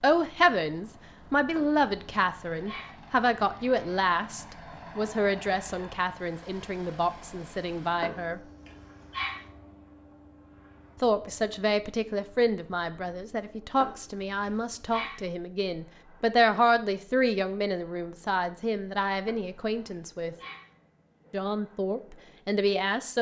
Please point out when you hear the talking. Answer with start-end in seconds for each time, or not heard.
0.0-8.4, 11.0-20.4, 21.3-23.1.